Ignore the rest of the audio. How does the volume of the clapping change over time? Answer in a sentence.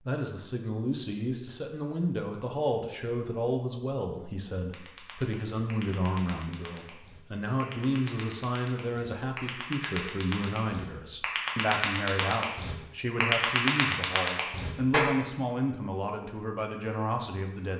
The volume of the clapping goes up.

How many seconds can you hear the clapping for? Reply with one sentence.
You can hear the clapping for 10 seconds altogether.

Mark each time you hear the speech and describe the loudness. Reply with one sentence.
The speech can be heard from 0.0 to 17.7 s, at a steady volume.